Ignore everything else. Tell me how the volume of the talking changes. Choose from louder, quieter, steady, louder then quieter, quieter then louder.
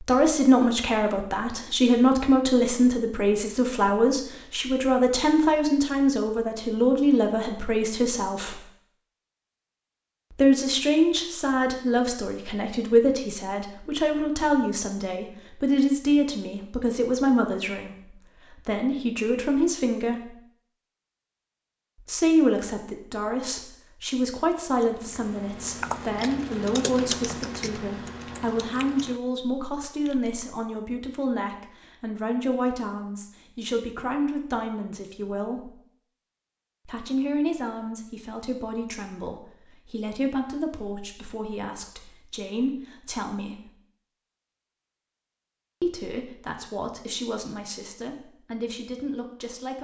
quieter.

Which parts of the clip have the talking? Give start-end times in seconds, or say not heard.
0.0-8.6, 10.3-20.4, 22.0-35.7, 36.9-43.7, 45.8-49.8.